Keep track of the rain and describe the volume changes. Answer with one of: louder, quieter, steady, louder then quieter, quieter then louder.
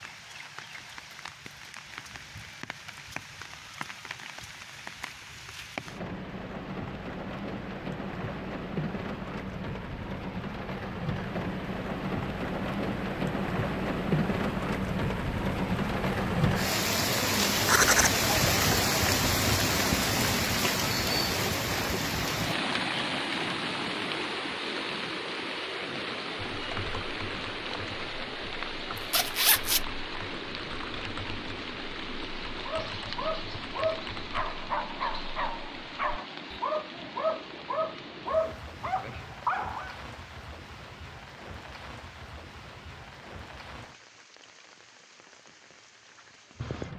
louder then quieter.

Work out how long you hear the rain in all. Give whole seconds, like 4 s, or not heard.
47 s.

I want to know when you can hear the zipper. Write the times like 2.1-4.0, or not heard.
17.4-18.2, 28.9-29.8.